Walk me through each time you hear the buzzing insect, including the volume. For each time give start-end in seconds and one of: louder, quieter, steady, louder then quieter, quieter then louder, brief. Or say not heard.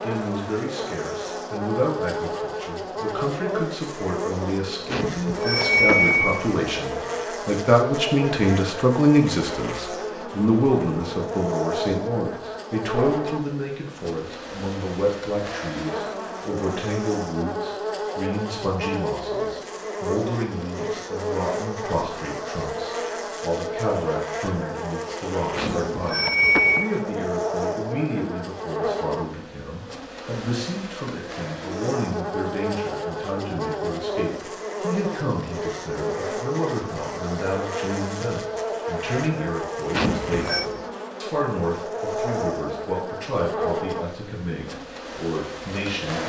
0.0-46.2 steady.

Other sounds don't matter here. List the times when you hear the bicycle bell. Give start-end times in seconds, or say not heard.
4.9-6.5, 25.6-26.9, 39.9-40.6.